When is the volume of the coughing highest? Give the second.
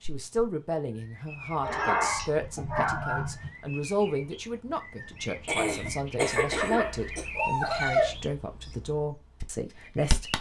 6 s.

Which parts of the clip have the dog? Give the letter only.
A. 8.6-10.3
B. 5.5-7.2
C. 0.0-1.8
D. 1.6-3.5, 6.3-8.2
D.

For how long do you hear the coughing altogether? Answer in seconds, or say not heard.
2 s.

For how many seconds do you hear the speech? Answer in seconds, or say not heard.
10 s.